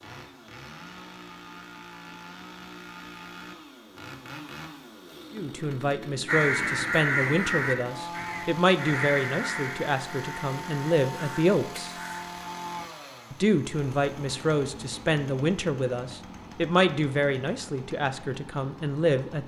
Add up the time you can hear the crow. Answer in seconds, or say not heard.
6 s.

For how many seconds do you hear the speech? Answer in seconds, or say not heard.
13 s.